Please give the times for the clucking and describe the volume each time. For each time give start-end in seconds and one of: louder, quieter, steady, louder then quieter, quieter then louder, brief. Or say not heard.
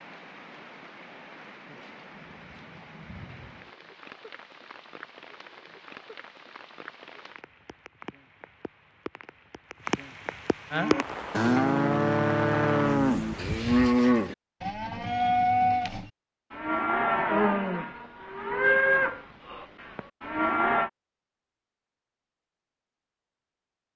not heard.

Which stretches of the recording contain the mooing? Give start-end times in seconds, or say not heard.
10.7-20.9.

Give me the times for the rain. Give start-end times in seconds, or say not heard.
0.0-13.8.